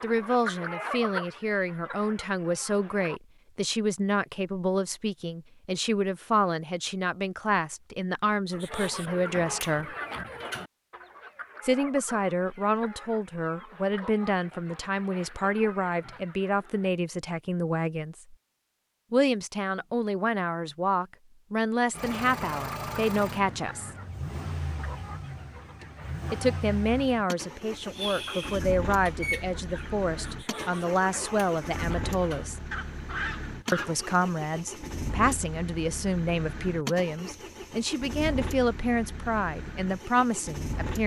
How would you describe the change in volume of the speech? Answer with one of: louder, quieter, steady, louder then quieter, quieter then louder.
steady.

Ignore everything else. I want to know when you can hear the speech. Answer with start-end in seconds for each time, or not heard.
0.0-9.9, 11.6-18.4, 19.1-23.9, 26.3-32.6, 33.7-41.0.